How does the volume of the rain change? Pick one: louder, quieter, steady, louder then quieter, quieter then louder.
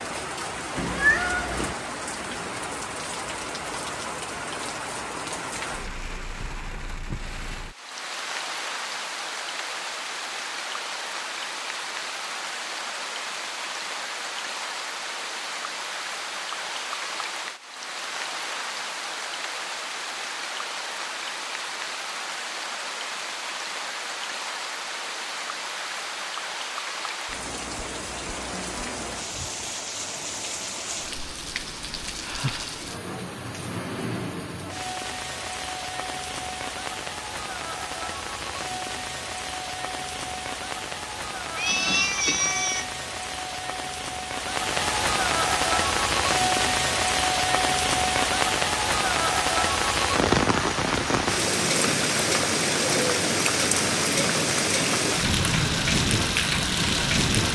louder.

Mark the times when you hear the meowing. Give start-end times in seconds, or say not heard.
0.8-1.8, 41.5-42.9.